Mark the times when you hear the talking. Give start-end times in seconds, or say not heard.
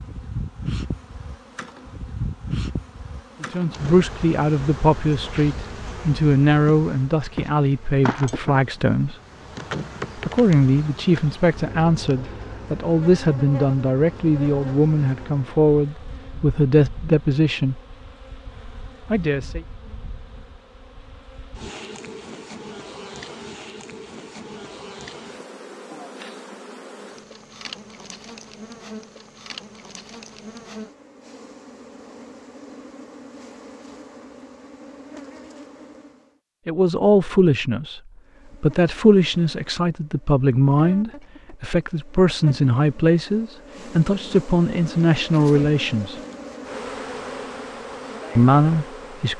3.4-9.2, 10.2-17.8, 19.1-19.6, 36.6-38.0, 38.6-46.2, 48.4-49.3.